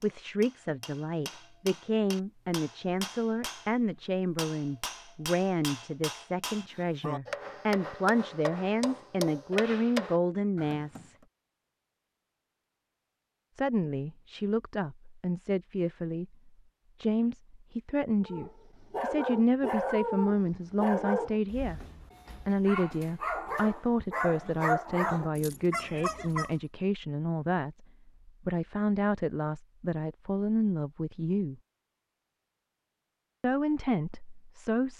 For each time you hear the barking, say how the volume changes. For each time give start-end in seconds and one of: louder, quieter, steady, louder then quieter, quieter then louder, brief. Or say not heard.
18.2-26.6 quieter then louder.